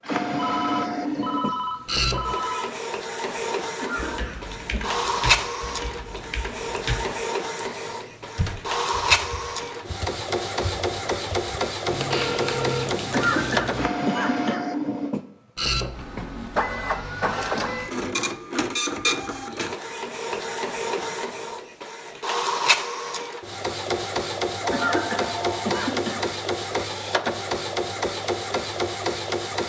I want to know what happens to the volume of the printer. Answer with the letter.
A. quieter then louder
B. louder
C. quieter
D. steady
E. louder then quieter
D.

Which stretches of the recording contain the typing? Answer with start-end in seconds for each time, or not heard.
4.0-13.9.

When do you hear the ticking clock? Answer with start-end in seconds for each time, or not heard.
not heard.